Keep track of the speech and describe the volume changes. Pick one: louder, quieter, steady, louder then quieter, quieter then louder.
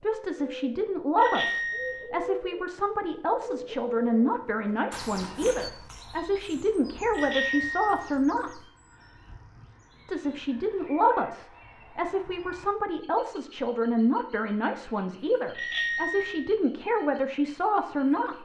steady.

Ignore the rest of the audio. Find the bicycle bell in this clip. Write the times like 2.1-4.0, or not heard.
1.1-2.1, 7.2-8.2, 15.6-16.6.